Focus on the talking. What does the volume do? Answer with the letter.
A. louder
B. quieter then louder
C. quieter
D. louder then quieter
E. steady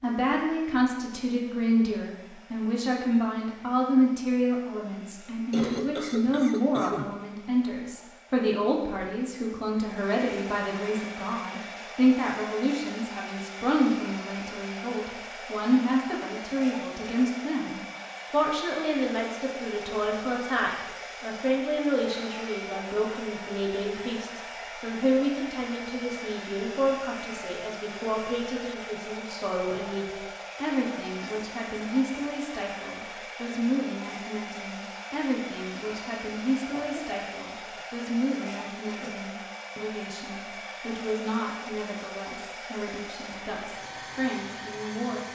C.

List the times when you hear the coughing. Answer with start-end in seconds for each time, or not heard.
5.2-7.1, 36.7-37.8.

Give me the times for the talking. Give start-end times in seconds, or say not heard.
0.0-45.3.